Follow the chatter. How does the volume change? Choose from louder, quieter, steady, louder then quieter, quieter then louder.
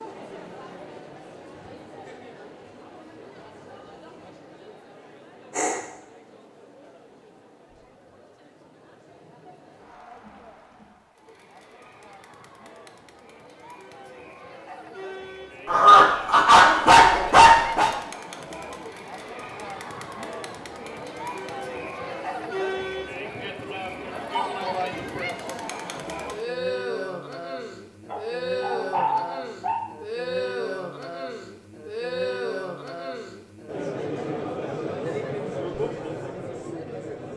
louder.